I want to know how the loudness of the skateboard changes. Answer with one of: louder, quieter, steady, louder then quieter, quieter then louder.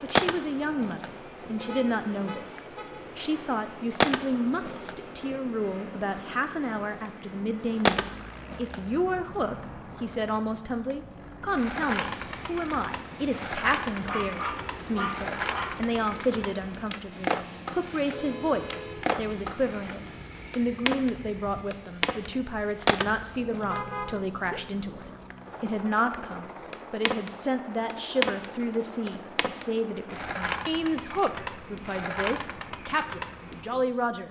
steady.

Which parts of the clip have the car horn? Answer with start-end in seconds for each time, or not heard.
1.6-3.0, 18.1-19.1, 23.6-24.6.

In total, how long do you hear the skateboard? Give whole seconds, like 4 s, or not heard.
34 s.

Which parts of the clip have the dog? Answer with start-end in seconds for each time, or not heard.
14.1-15.8.